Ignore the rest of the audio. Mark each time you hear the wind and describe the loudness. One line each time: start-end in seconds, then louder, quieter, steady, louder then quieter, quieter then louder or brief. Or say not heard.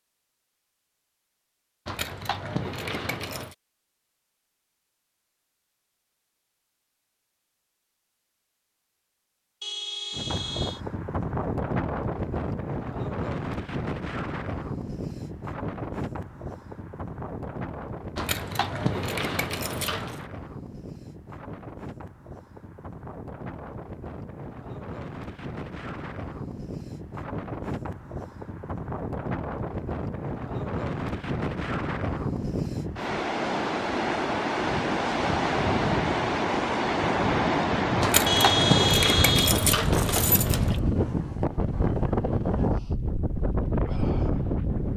10.1-44.9 quieter then louder.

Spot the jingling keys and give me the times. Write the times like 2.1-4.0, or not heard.
1.9-3.5, 18.1-20.2, 38.0-40.8.